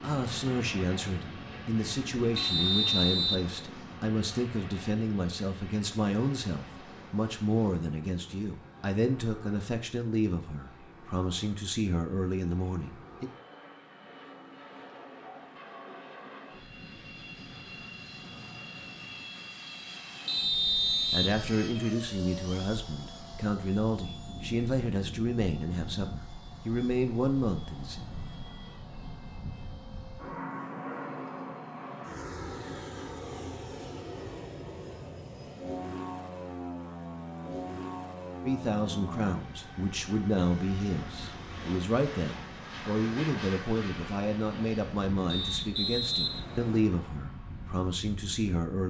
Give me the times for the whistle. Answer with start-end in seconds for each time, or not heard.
2.4-3.5, 20.2-21.4, 45.3-46.9.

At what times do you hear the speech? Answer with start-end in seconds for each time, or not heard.
0.0-13.3, 21.1-27.9, 38.5-48.8.